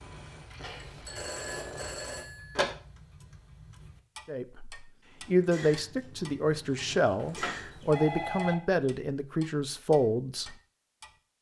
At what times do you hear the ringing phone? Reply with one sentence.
The ringing phone can be heard from 0.6 to 2.6 s and from 7.2 to 8.6 s.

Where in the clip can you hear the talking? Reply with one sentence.
You can hear the talking from 4.2 to 10.6 s.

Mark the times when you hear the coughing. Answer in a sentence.
You can't hear the coughing here.